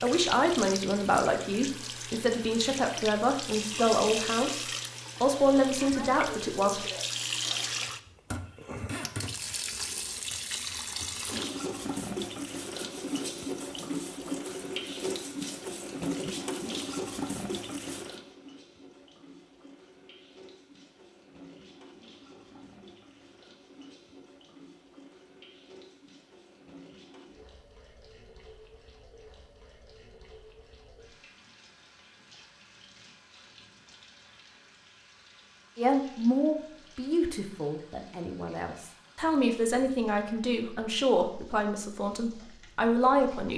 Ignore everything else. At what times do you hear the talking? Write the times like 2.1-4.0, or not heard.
0.0-6.8, 35.8-43.5.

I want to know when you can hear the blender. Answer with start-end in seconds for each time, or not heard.
not heard.